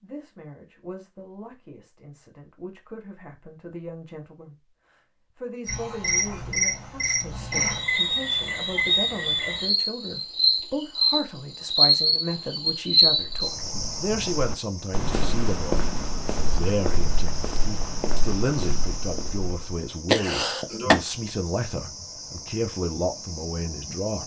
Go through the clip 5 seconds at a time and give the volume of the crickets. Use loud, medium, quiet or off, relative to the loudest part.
off, loud, loud, quiet, quiet.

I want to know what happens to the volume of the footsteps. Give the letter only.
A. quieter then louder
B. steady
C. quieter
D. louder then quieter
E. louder
D.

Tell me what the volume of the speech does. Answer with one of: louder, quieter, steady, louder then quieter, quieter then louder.
louder.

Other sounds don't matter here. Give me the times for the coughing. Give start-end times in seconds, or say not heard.
20.1-20.9.